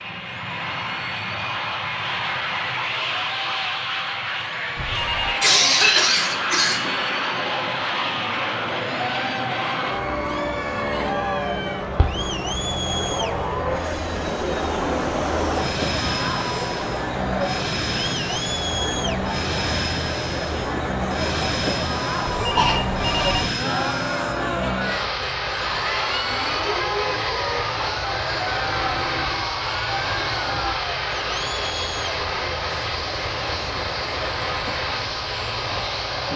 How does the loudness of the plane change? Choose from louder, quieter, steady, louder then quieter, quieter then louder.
steady.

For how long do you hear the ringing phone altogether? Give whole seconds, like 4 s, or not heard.
2 s.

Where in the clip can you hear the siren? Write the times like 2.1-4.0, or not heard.
25.6-30.8.